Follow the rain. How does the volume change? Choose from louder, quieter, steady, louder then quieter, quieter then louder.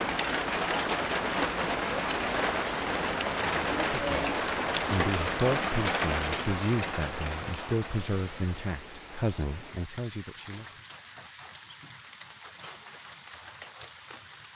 quieter.